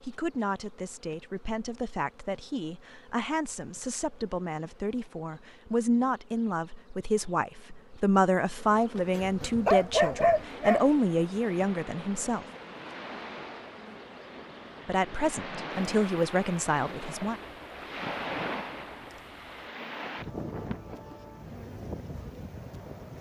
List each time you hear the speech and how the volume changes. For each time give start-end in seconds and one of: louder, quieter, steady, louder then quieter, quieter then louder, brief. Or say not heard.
0.0-12.4 louder
14.8-17.4 brief.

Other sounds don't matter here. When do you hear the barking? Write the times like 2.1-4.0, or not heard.
9.2-10.9.